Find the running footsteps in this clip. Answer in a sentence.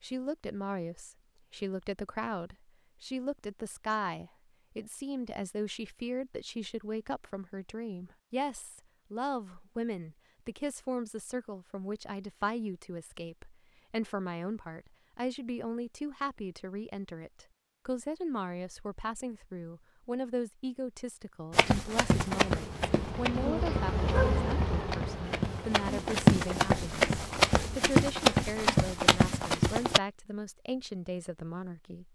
You can hear the running footsteps from 21.5 to 30.0 s.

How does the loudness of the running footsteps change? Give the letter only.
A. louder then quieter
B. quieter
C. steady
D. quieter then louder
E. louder
D.